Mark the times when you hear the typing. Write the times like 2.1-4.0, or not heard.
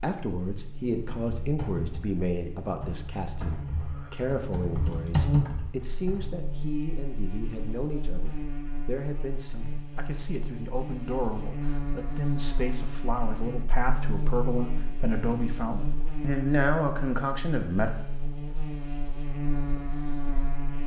0.9-6.3.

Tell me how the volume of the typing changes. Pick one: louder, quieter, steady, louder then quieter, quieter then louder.
quieter then louder.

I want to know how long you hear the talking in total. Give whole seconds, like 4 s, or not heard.
18 s.